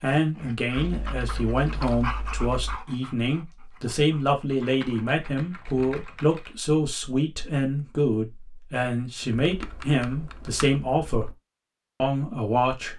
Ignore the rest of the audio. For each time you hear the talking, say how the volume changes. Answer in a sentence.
You can hear the talking from 0.0 to 11.3 s, at a steady volume; and briefly from 12.0 to 12.9 s.